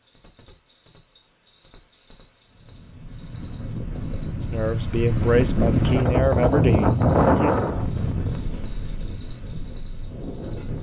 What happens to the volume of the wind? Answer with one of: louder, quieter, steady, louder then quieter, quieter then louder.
louder then quieter.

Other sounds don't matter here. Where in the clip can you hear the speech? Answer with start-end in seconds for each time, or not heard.
4.5-7.5.